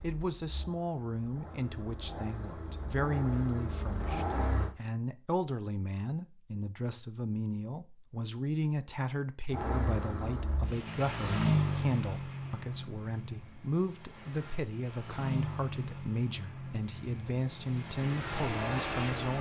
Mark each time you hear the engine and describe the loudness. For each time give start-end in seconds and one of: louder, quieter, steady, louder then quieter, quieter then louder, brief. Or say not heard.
0.0-4.8 louder
9.5-19.3 quieter then louder.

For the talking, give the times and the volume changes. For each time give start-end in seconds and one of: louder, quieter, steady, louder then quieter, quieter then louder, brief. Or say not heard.
0.0-19.3 steady.